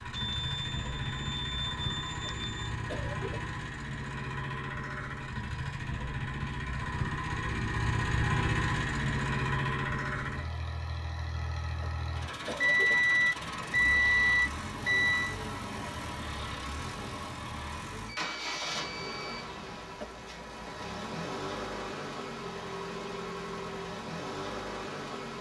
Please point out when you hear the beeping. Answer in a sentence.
The beeping can be heard from 0.1 to 2.7 s, from 12.6 to 15.3 s and from 18.1 to 19.5 s.